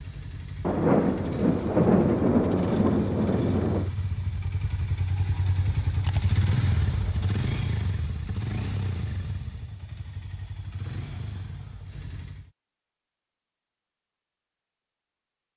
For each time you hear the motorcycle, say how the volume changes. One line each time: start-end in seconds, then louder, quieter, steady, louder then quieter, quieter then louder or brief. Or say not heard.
0.0-12.5 louder then quieter.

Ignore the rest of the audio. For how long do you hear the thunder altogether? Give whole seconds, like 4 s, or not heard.
3 s.